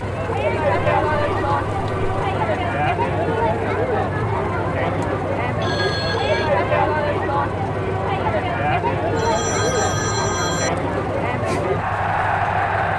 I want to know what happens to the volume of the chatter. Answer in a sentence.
The volume of the chatter stays about the same.